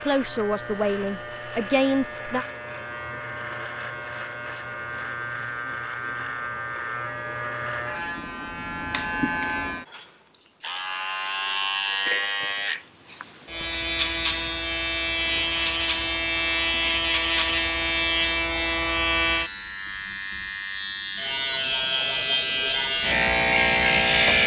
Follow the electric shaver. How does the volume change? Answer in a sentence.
The loudness of the electric shaver goes up.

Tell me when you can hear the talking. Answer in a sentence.
You can hear the talking from 0.0 to 2.5 s.